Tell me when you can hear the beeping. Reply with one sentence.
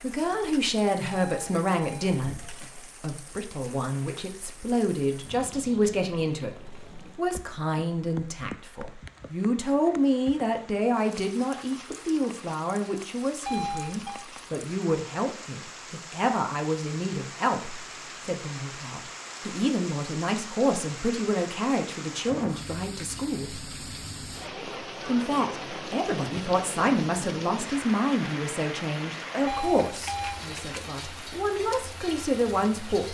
The beeping can be heard from 1.1 to 2.6 s, from 13.4 to 14.2 s and from 29.4 to 30.4 s.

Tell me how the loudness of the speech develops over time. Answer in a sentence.
The volume of the speech stays about the same.